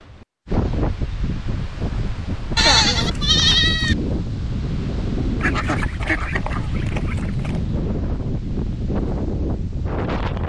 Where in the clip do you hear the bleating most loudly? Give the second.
3 s.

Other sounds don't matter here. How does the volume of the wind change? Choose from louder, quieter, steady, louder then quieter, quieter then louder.
steady.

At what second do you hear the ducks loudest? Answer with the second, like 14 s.
6 s.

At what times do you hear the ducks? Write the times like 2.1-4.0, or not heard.
5.4-7.6.